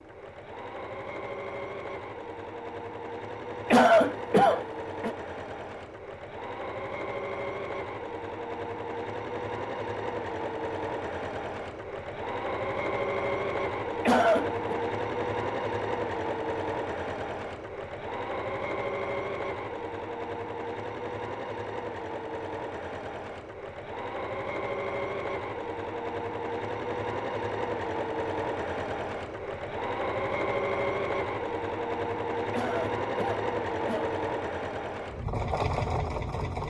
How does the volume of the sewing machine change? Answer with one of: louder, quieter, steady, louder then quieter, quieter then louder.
louder.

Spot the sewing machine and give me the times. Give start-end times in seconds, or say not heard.
0.0-36.6.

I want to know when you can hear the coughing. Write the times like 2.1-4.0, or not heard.
3.7-5.2, 14.1-14.8, 32.5-34.1.